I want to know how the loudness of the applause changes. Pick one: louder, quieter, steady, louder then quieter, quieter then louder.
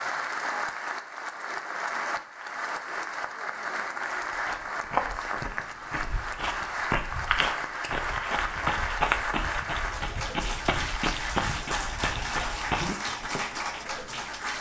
steady.